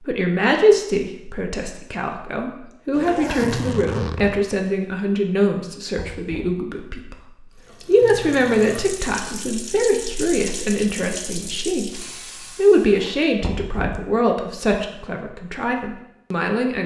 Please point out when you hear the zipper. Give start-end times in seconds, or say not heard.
2.9-4.5, 12.9-13.3.